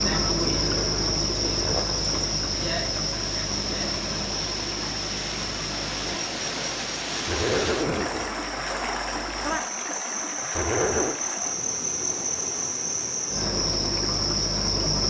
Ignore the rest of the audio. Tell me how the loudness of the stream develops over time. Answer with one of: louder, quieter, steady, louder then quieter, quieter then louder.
louder then quieter.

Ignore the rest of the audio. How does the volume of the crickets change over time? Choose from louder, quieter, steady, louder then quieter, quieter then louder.
quieter then louder.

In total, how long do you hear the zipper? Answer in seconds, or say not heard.
3 s.